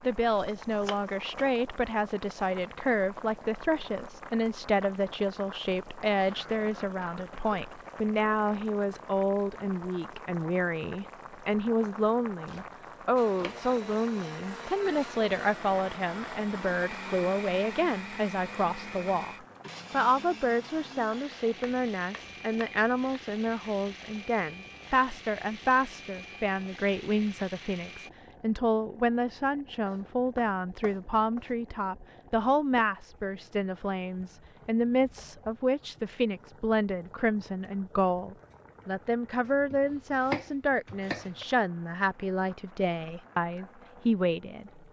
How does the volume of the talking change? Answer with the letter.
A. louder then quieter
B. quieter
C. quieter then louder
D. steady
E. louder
D.